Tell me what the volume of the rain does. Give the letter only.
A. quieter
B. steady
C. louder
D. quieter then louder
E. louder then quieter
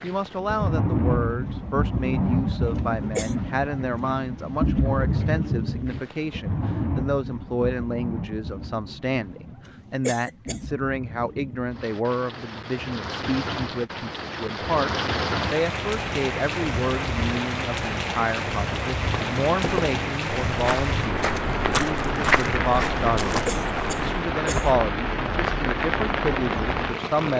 D.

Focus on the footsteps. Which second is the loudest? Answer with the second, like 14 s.
22 s.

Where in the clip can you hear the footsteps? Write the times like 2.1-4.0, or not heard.
19.1-24.1.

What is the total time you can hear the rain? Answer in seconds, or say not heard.
27 s.